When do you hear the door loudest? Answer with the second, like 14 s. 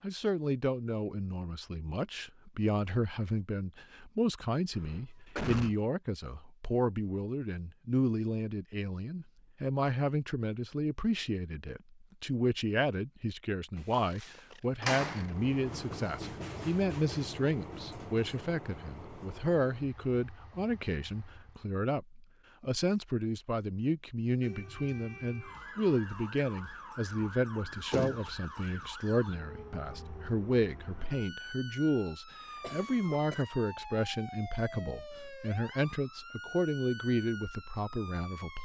15 s.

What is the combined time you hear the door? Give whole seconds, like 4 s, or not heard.
3 s.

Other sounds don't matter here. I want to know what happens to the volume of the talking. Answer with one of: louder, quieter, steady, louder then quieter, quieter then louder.
steady.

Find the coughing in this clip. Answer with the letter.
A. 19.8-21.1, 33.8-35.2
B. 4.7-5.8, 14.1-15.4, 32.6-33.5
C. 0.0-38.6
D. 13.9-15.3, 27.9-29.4
B.